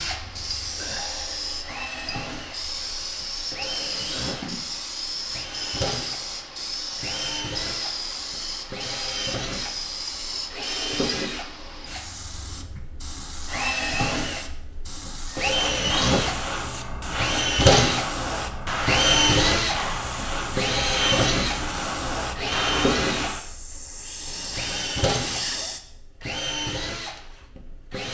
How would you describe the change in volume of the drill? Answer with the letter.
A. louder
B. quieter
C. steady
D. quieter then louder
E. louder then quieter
E.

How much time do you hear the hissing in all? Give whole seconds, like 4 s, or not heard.
26 s.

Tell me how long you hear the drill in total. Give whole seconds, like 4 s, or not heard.
28 s.